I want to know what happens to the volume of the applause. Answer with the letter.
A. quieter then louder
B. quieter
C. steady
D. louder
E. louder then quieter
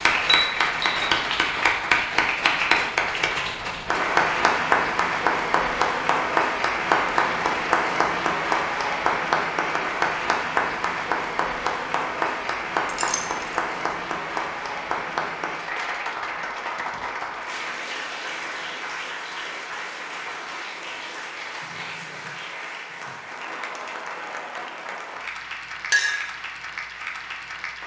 B.